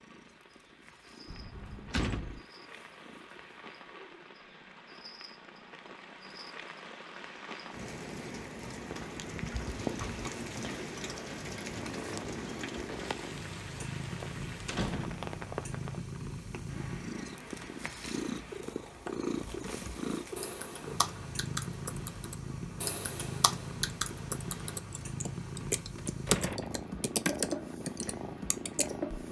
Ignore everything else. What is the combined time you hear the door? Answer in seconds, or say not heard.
4 s.